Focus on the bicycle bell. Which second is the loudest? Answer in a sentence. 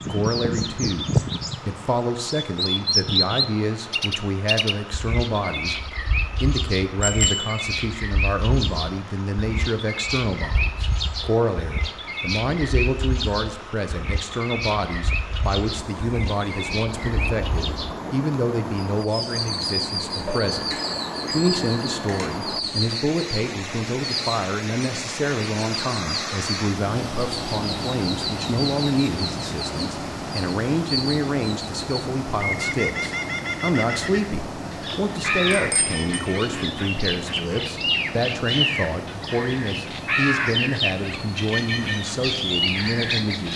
The loudest moment of the bicycle bell is at 7 seconds.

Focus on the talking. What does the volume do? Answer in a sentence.
The loudness of the talking stays about the same.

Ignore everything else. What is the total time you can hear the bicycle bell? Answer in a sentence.
The bicycle bell can be heard for 3 seconds in total.